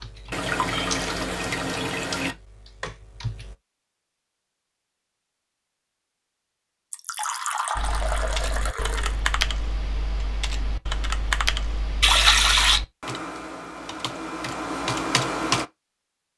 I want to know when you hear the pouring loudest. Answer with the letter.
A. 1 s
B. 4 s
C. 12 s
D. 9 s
C.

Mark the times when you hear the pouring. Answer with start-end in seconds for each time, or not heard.
0.3-2.4, 6.9-9.2, 12.0-12.8.